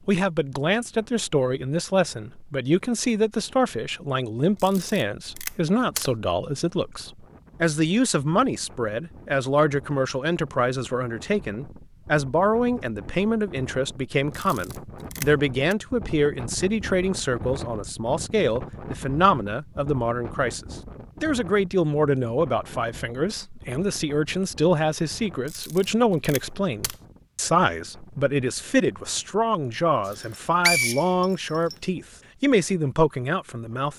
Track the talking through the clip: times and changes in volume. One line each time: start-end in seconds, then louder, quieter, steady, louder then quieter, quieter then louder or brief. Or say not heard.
0.1-33.9 steady.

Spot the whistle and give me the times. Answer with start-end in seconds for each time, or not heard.
30.1-31.8.